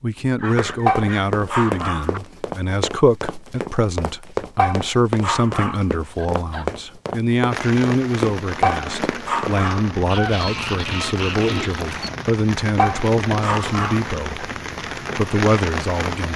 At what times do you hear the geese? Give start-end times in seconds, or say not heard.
0.3-2.2, 10.1-12.1.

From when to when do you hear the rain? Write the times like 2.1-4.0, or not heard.
7.5-16.3.